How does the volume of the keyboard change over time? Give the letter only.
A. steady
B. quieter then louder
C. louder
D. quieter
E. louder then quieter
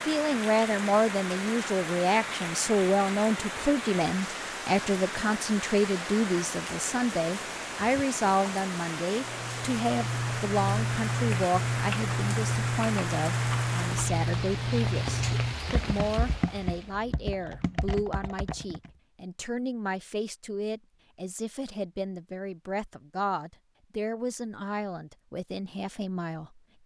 D.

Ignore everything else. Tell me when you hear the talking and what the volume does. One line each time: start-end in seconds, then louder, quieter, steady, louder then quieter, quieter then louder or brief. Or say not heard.
0.1-26.8 quieter.